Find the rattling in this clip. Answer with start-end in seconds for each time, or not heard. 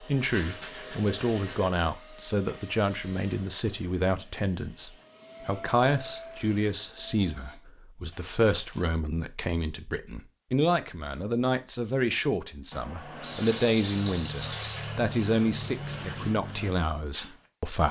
0.2-1.6, 8.1-8.8, 13.2-14.9.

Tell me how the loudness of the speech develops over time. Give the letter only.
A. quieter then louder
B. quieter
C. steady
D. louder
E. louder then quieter
C.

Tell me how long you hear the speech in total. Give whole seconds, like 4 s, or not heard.
18 s.